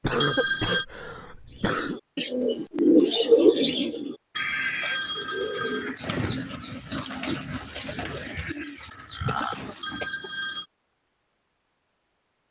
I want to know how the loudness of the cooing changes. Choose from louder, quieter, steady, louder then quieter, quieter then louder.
quieter.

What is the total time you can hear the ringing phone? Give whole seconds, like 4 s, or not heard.
3 s.